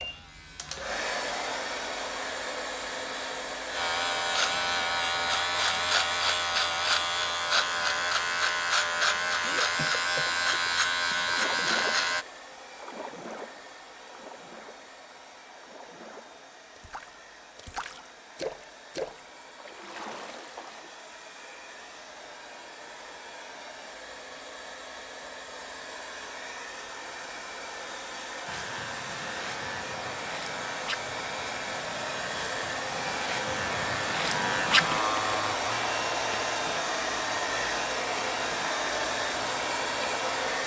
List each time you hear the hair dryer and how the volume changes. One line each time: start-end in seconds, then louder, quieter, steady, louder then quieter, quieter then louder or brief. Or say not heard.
0.0-40.6 quieter then louder.